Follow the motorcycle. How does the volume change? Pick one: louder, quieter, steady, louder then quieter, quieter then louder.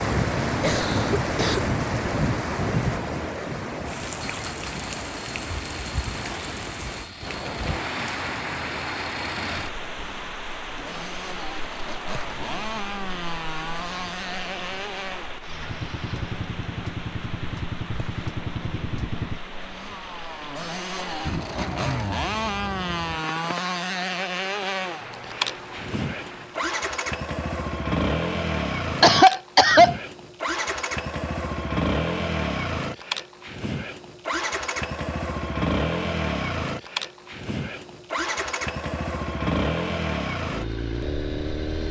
louder.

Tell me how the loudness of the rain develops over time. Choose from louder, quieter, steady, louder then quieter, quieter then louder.
quieter.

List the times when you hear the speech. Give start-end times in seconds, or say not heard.
not heard.